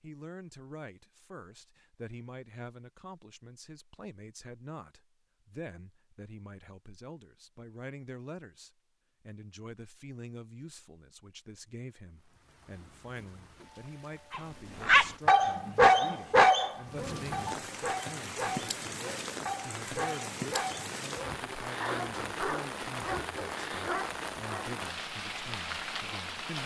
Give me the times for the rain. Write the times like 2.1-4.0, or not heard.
12.2-26.6.